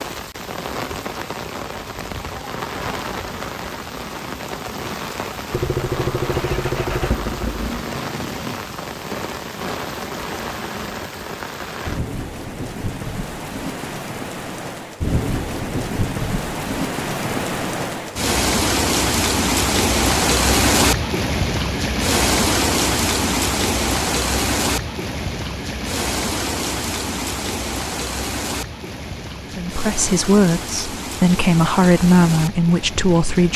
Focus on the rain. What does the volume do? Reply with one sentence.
The volume of the rain goes up, then down.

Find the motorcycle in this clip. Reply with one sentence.
The motorcycle can be heard from 5.5 to 8.6 s.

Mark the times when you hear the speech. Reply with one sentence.
The speech can be heard from 29.6 to 33.5 s.